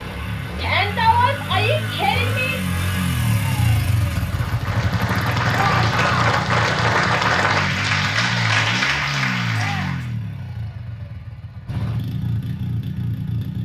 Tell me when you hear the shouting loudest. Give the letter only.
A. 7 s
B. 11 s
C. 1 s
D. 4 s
C.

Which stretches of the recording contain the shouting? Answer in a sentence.
You can hear the shouting from 0.6 to 2.5 s, from 5.5 to 6.2 s and from 9.5 to 10.1 s.